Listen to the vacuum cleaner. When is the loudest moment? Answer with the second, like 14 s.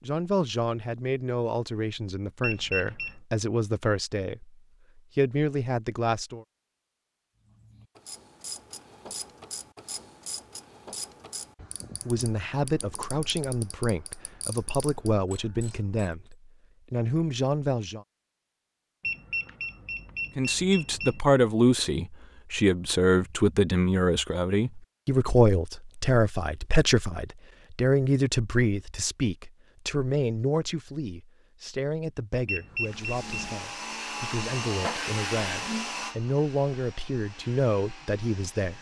35 s.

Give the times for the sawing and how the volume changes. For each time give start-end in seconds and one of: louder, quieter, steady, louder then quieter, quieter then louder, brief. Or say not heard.
not heard.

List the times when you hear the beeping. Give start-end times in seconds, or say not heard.
2.4-3.1, 19.0-21.2, 32.5-33.5.